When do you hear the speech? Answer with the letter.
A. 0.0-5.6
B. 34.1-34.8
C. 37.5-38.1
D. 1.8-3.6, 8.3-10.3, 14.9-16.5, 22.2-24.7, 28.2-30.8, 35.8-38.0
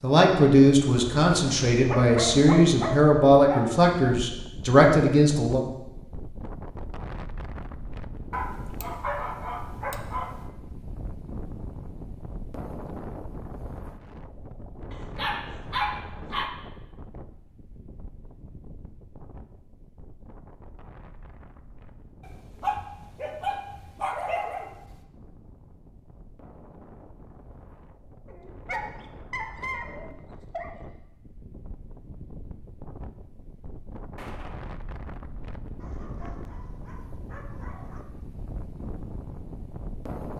A.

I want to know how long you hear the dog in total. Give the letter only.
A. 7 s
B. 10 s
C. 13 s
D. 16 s
C.